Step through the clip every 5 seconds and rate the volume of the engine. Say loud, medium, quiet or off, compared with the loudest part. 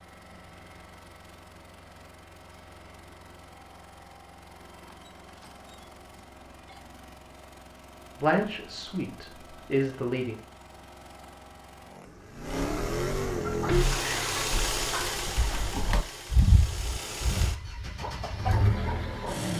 quiet, quiet, loud, loud.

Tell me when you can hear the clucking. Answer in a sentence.
The clucking can be heard from 13.4 to 19.5 s.